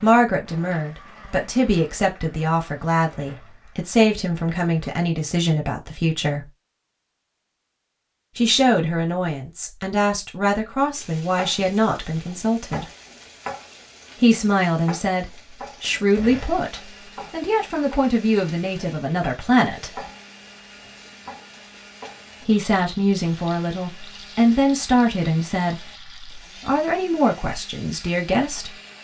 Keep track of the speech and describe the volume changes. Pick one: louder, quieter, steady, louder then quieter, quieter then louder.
steady.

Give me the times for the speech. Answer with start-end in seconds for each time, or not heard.
0.0-6.5, 8.3-12.8, 14.2-20.1, 22.4-28.8.